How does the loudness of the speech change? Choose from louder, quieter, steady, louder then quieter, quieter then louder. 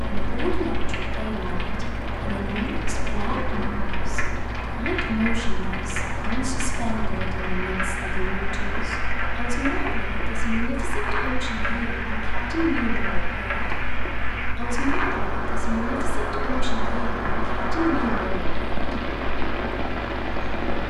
steady.